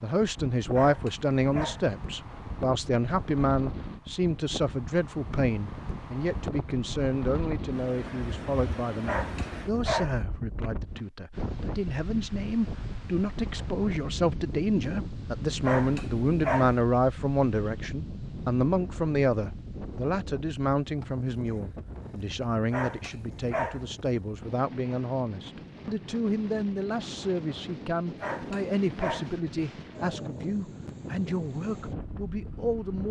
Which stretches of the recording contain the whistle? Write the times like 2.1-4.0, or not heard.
not heard.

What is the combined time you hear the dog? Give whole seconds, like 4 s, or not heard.
6 s.